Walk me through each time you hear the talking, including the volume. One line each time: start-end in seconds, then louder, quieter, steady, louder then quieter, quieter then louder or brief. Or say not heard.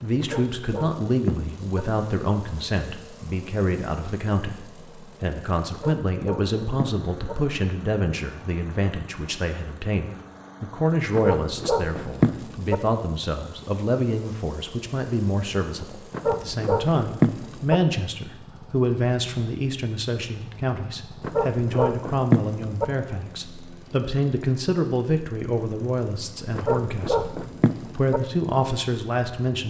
0.0-29.6 steady.